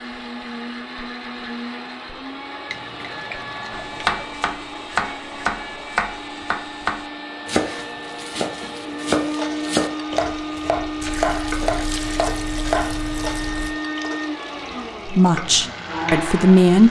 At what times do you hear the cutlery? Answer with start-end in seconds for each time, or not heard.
not heard.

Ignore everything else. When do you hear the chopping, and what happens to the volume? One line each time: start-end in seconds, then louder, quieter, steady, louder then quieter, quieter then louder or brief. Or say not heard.
3.7-12.9 steady.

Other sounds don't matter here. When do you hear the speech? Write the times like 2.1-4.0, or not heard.
15.1-16.8.